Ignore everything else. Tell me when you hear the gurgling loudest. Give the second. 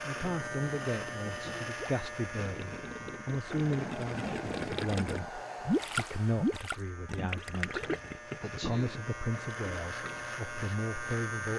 6 s.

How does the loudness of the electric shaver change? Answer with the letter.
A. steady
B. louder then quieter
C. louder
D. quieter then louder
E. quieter
D.